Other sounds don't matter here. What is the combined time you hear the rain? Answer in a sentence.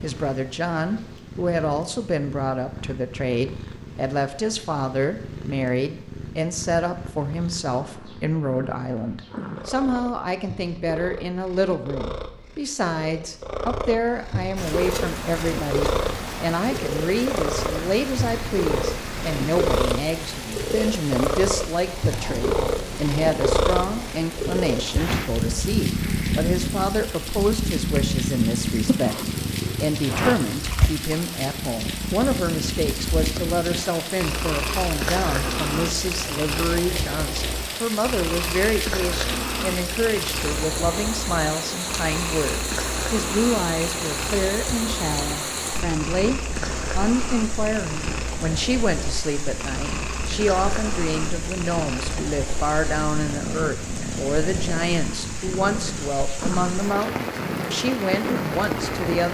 You can hear the rain for 45 seconds altogether.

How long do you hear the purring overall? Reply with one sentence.
You can hear the purring for 59 seconds altogether.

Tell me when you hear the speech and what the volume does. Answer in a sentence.
The speech can be heard from 0.0 to 59.2 s, at a steady volume.